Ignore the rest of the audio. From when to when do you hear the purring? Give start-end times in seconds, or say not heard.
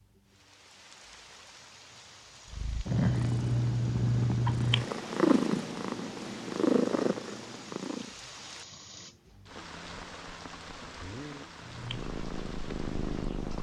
2.5-8.2, 11.6-13.5.